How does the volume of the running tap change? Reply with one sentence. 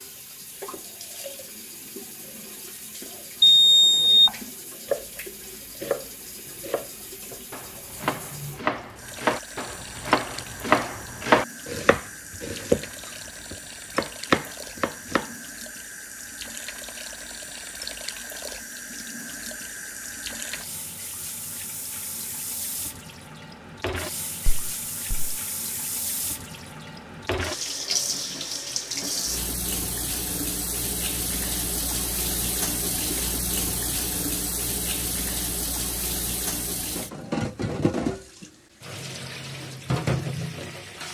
The volume of the running tap goes up.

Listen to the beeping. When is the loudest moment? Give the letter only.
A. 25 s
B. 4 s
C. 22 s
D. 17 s
B.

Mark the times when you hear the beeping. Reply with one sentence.
The beeping can be heard from 3.4 to 4.3 s and from 24.4 to 25.4 s.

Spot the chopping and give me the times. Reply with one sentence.
The chopping can be heard from 4.2 to 15.3 s.